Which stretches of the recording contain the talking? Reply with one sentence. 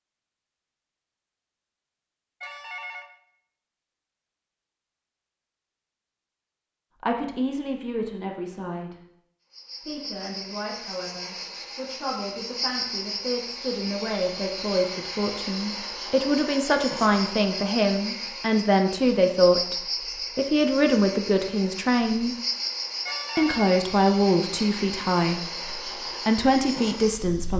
The talking can be heard from 7.0 to 8.9 s, from 9.8 to 19.8 s, from 20.4 to 22.4 s and from 23.4 to 27.5 s.